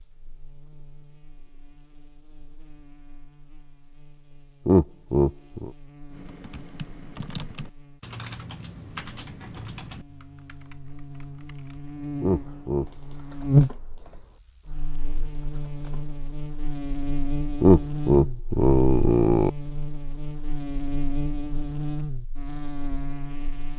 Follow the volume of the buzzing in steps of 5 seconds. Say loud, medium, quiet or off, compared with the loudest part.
quiet, quiet, loud, medium, medium.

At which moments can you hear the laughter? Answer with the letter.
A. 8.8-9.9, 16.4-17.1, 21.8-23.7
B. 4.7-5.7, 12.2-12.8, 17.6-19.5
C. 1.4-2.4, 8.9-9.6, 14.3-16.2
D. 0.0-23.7
B.